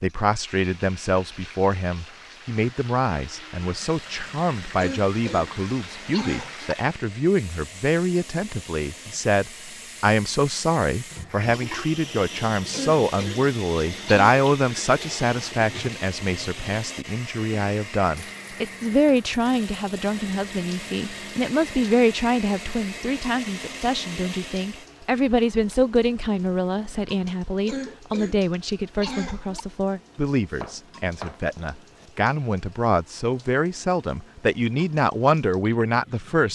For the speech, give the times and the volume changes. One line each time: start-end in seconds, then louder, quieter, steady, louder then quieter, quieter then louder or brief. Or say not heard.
0.0-36.5 steady.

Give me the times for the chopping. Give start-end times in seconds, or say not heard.
30.5-32.1.